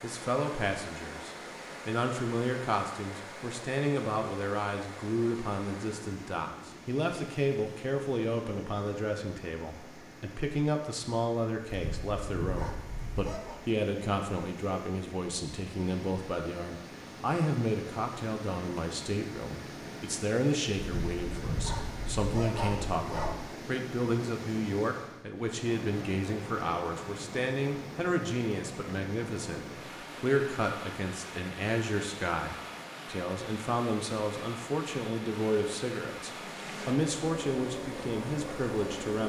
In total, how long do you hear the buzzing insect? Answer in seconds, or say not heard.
3 s.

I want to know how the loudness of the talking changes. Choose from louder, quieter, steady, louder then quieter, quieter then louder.
steady.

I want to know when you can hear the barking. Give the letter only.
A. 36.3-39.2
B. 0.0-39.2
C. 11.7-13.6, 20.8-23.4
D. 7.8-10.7
C.